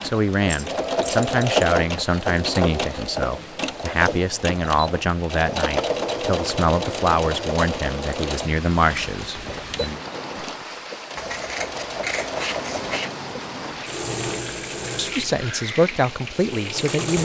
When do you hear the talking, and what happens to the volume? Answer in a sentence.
The talking can be heard from 0.0 to 10.0 s, at a steady volume; and briefly from 14.9 to 17.1 s.